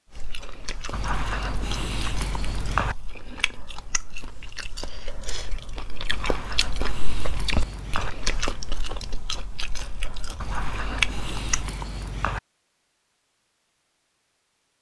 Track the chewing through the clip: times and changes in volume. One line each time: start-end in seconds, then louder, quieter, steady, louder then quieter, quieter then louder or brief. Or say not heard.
0.1-11.7 louder.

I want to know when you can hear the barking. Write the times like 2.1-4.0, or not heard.
0.9-3.0, 6.1-8.1, 10.4-12.4.